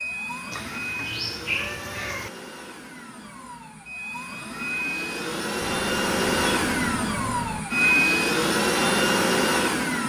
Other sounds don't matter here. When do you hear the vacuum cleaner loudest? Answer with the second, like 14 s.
8 s.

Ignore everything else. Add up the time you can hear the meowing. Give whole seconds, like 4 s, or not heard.
4 s.